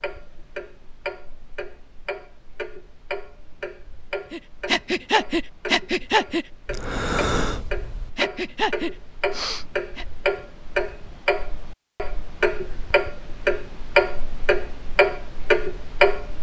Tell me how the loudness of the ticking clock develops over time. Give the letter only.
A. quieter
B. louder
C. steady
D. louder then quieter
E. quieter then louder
B.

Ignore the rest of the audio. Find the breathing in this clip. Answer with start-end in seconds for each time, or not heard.
4.3-10.1.